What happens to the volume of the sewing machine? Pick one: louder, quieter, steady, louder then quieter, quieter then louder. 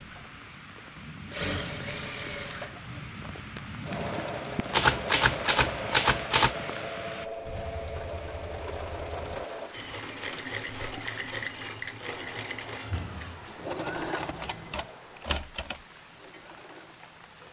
steady.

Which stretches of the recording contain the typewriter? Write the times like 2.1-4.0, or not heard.
4.7-6.5, 13.9-15.8.